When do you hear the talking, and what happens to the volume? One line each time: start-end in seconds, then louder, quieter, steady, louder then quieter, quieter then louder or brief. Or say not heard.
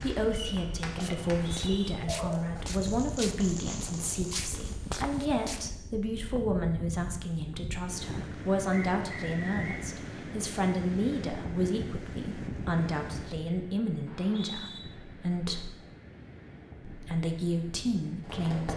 0.0-15.7 steady
16.9-18.7 brief.